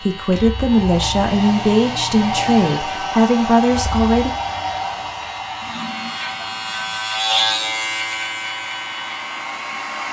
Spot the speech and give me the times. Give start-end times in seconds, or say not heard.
0.0-4.3.